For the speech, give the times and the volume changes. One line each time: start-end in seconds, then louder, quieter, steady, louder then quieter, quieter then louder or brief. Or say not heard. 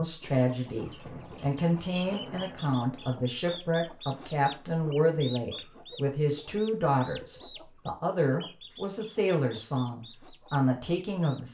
0.0-11.5 steady.